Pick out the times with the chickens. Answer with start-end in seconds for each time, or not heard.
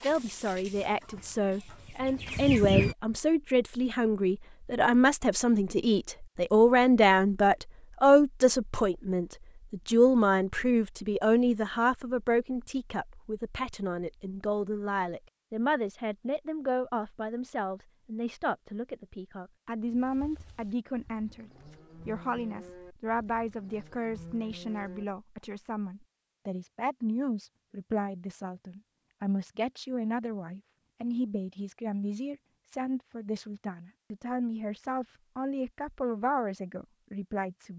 0.0-3.0.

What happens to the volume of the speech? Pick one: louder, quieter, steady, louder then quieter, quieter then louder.
quieter.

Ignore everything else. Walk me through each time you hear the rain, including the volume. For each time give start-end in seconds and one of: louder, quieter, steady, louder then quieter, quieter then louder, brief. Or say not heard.
not heard.